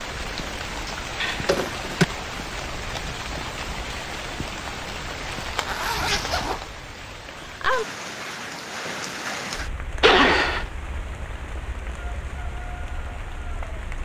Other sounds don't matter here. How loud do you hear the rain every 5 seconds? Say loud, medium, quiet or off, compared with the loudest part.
loud, loud, medium.